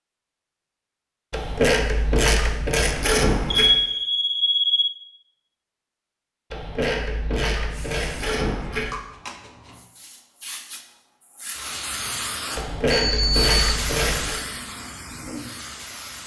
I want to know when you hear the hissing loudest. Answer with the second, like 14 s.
14 s.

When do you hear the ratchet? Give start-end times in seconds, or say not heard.
1.3-3.8, 6.5-8.9, 12.6-14.4.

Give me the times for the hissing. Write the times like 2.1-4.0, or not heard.
7.7-16.2.